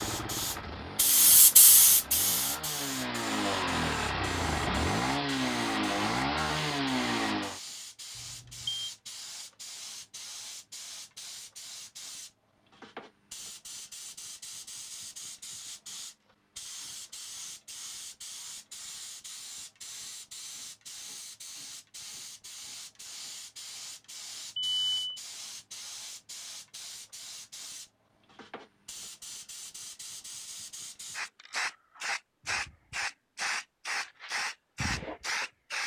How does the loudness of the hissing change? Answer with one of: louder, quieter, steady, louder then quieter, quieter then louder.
quieter then louder.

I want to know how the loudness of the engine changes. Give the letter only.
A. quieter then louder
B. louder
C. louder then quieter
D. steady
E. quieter
B.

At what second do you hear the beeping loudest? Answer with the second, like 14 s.
25 s.